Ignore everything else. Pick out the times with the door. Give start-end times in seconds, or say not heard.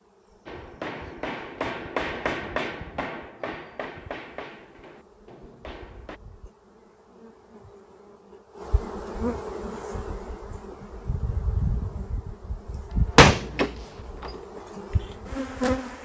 12.9-14.3.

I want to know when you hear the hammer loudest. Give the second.
2 s.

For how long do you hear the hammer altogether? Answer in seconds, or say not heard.
6 s.